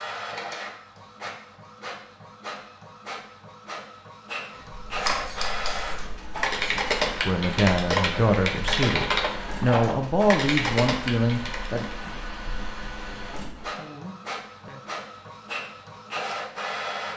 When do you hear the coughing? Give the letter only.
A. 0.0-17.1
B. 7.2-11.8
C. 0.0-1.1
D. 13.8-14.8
D.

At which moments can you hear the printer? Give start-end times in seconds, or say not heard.
0.0-17.1.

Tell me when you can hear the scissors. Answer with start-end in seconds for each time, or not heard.
4.5-6.0.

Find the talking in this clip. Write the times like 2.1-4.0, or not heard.
7.2-11.8.